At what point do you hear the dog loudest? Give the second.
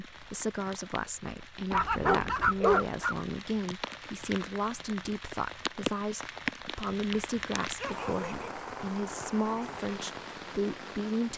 3 s.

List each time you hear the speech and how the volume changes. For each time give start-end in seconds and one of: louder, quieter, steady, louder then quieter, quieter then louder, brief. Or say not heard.
0.0-11.3 steady.